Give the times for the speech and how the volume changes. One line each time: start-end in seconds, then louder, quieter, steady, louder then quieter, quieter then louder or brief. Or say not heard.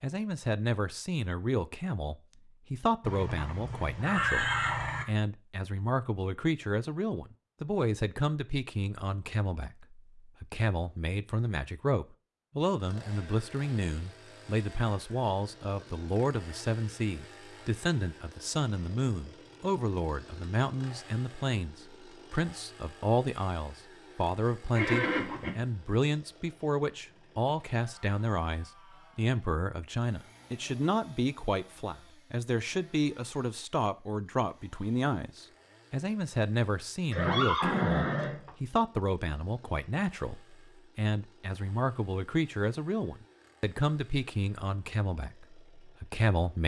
0.0-46.6 steady.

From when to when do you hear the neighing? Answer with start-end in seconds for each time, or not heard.
3.0-5.0, 24.8-25.5, 37.1-38.5.